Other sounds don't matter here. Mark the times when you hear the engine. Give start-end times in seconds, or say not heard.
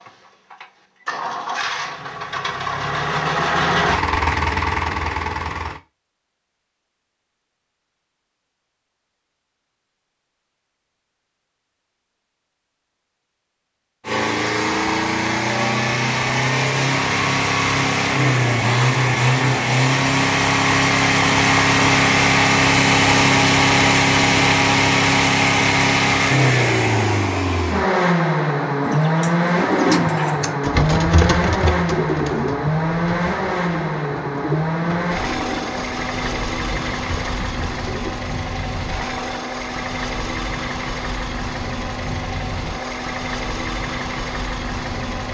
0.0-5.8, 14.1-45.2.